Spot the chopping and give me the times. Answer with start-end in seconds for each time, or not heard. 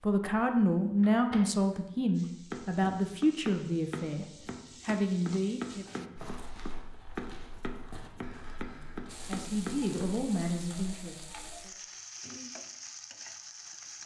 2.5-10.0.